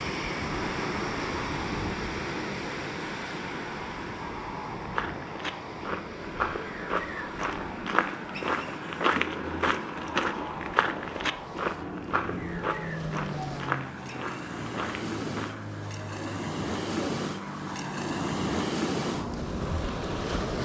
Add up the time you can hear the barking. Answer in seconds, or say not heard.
not heard.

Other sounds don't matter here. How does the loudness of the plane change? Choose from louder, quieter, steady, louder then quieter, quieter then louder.
steady.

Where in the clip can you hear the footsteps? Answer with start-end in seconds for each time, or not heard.
4.8-15.7.